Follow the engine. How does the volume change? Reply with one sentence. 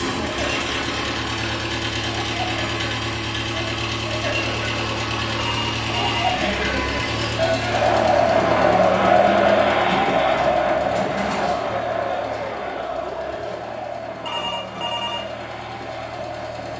The loudness of the engine goes down.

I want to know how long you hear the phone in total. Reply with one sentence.
The phone can be heard for 2 seconds in total.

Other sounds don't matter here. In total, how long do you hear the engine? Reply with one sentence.
The engine can be heard for 17 seconds in total.